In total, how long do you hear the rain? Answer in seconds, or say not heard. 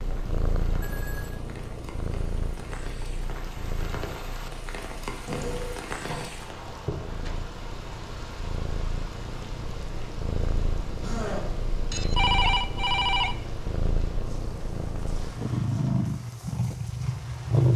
18 s.